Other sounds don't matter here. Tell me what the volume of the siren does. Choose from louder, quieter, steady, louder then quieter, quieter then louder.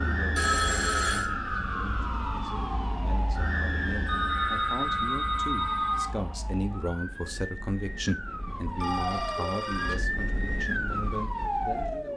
quieter then louder.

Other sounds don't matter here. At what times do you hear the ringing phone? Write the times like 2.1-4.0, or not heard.
0.3-1.2, 4.0-6.1, 8.4-9.9.